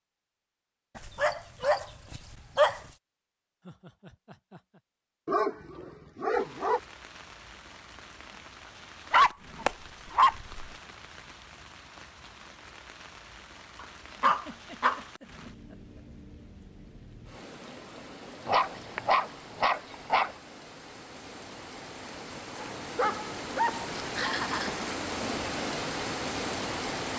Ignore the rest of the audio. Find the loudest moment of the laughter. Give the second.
24 s.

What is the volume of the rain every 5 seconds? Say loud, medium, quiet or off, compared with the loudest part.
off, quiet, quiet, quiet, medium, loud.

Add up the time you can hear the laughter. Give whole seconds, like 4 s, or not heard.
4 s.